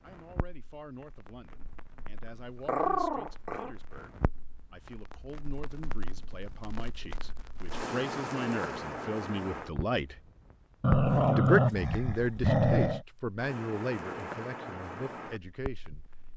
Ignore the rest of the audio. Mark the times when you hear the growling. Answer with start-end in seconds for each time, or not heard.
2.6-3.7, 10.8-13.1.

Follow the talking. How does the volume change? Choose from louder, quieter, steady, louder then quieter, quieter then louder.
louder then quieter.